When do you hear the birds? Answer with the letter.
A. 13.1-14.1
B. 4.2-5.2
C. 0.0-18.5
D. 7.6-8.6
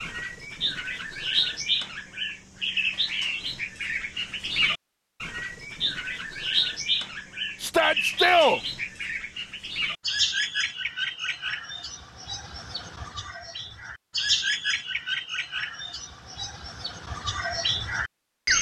C.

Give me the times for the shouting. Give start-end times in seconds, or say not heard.
7.6-8.6.